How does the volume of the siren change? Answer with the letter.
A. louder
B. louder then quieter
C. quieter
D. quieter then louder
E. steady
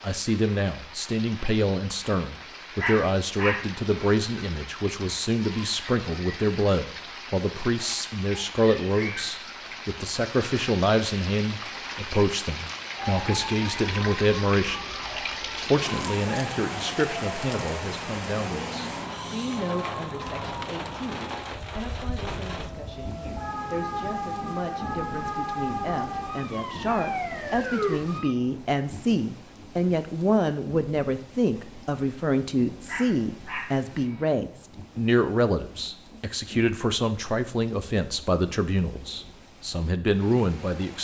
A.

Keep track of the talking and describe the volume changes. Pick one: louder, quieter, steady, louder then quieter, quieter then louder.
quieter then louder.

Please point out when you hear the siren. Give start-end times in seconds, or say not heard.
12.9-28.4.